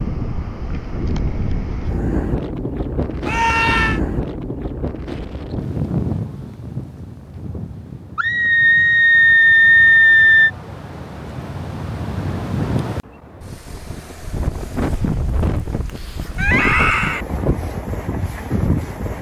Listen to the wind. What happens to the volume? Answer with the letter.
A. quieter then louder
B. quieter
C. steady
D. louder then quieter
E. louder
A.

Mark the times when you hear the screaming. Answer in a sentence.
You can hear the screaming from 3.2 to 4.0 s, from 8.2 to 10.5 s and from 16.4 to 17.2 s.